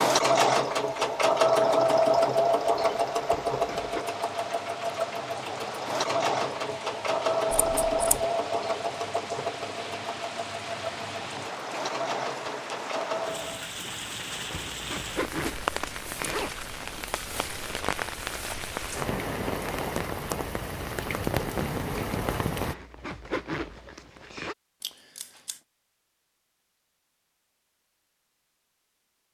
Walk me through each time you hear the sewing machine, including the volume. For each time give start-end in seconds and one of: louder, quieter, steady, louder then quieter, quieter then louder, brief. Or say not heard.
0.0-13.7 quieter.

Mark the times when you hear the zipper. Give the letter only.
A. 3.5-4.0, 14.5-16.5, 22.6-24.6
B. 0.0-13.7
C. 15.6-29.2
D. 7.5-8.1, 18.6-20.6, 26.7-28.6
A.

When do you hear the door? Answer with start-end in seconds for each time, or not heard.
not heard.